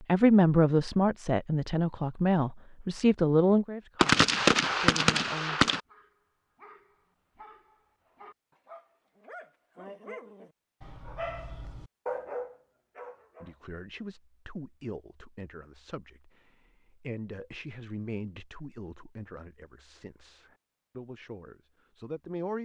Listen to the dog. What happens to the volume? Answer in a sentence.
The loudness of the dog goes up.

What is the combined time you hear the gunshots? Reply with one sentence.
You can hear the gunshots for 2 seconds altogether.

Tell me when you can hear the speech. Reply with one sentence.
The speech can be heard from 0.0 to 5.7 s and from 13.4 to 22.6 s.